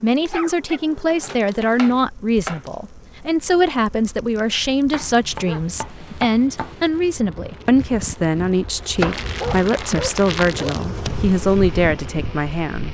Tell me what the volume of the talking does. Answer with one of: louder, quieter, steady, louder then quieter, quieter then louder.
steady.